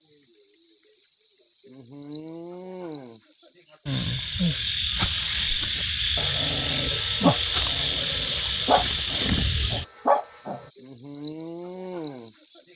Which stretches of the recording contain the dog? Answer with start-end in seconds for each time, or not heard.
5.5-10.7.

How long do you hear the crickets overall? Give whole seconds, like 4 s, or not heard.
13 s.